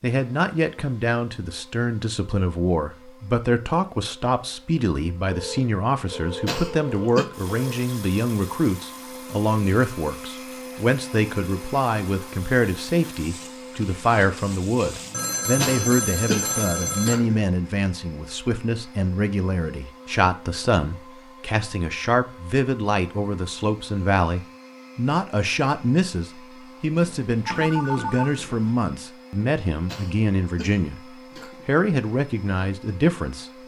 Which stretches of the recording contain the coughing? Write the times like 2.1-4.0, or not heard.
6.5-7.2, 15.6-17.4, 29.9-31.6.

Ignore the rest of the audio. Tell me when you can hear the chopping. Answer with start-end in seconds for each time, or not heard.
not heard.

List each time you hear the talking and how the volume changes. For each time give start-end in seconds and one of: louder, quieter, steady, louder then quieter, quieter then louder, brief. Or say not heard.
0.0-33.5 steady.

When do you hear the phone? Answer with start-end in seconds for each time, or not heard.
5.2-7.9, 15.1-17.1, 27.0-28.7.